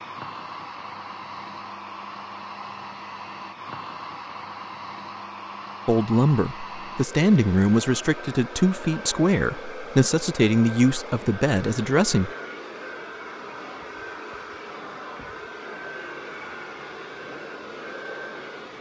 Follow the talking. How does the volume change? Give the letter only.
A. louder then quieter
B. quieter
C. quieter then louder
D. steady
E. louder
D.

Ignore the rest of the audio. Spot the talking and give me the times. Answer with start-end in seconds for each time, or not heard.
5.8-12.3.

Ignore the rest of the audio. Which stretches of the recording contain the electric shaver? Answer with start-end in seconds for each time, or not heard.
not heard.